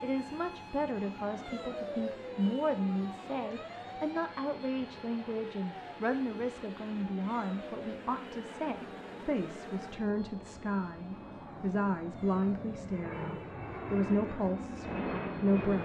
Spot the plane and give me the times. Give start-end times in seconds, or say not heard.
0.1-15.7.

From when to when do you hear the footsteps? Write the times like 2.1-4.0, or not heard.
not heard.